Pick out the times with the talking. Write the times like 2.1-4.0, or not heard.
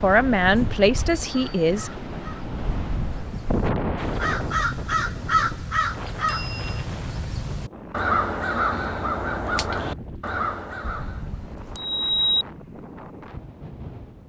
0.0-1.9.